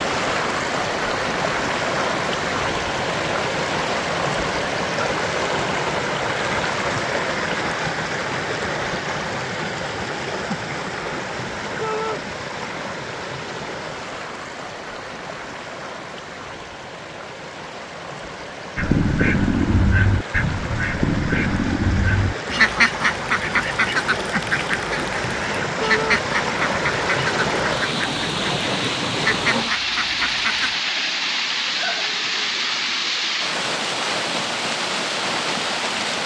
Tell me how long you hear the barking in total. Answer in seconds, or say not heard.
not heard.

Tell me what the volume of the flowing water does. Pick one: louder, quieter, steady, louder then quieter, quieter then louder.
quieter then louder.